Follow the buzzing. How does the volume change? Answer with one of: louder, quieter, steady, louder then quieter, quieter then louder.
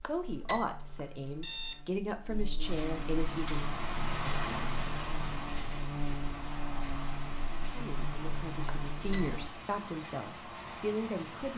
louder.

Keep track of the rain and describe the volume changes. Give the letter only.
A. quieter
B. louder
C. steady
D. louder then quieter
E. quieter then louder
A.